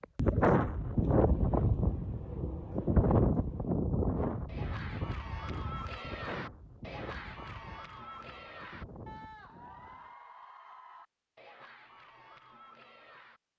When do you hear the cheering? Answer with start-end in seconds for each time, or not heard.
4.2-13.4.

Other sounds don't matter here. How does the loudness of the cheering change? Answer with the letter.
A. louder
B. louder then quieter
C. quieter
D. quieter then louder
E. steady
C.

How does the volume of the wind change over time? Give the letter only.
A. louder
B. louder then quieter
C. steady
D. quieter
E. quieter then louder
D.